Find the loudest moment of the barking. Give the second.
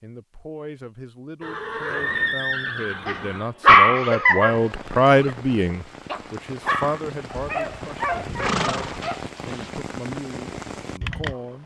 4 s.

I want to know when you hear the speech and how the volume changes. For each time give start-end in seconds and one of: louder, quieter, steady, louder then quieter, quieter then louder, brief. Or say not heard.
0.0-11.6 louder then quieter.